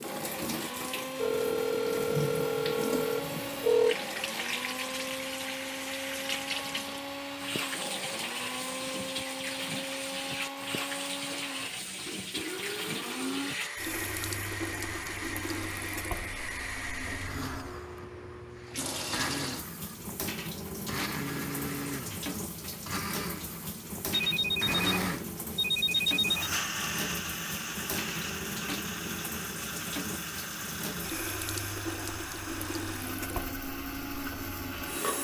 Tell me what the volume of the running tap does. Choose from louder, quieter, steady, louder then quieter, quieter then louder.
steady.